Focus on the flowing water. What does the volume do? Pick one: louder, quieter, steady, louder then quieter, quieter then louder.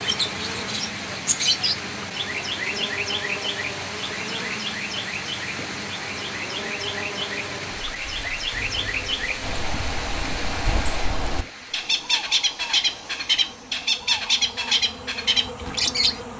quieter.